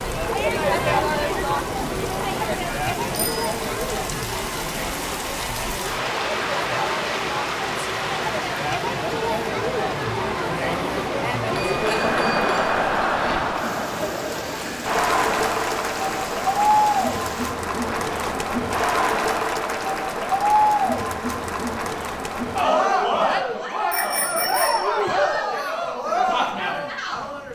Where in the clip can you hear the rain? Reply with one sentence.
You can hear the rain from 0.0 to 18.4 s.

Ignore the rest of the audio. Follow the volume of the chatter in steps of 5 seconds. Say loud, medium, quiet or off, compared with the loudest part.
loud, medium, loud, loud, loud, loud.